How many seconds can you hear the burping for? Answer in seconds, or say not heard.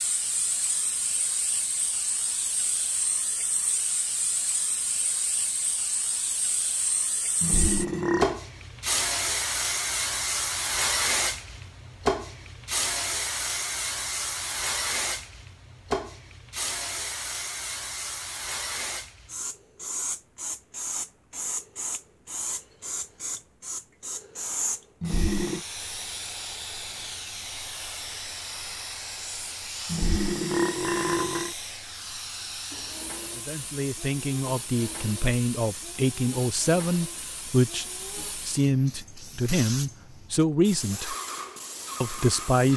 3 s.